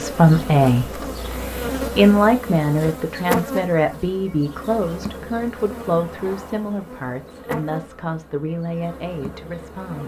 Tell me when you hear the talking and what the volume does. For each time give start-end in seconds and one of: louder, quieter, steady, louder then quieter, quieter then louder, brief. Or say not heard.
0.0-10.0 quieter.